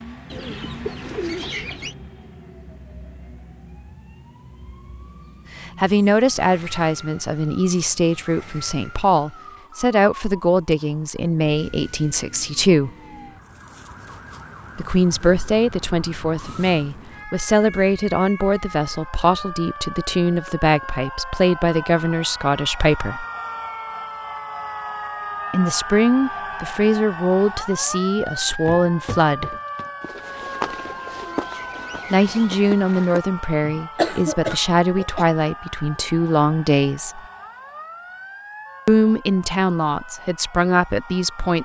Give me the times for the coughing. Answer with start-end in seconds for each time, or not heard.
34.0-35.2.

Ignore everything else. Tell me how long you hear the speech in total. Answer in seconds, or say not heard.
28 s.